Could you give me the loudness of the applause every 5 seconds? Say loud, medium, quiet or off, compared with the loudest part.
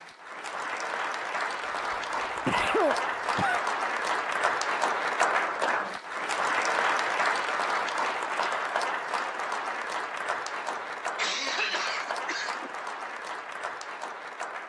loud, loud, medium.